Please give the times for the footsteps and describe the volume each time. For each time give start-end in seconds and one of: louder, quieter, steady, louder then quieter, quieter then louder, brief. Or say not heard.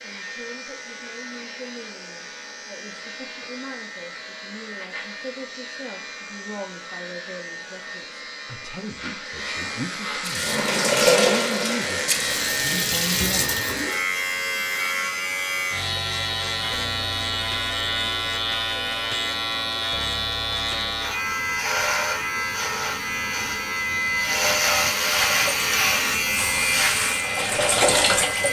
not heard.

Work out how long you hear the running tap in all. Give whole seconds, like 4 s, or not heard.
7 s.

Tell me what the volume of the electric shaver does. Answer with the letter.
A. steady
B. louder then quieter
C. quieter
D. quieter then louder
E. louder
E.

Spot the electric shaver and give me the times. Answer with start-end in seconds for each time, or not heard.
0.0-28.4.